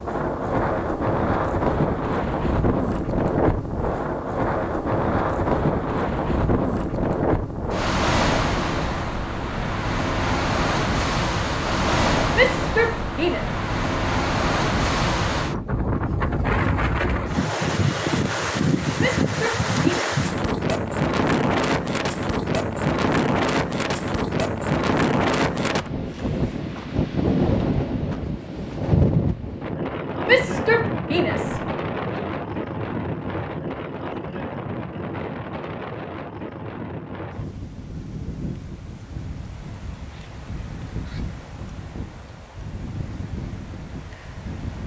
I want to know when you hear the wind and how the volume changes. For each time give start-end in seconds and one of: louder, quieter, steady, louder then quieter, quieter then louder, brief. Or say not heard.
0.0-44.8 quieter.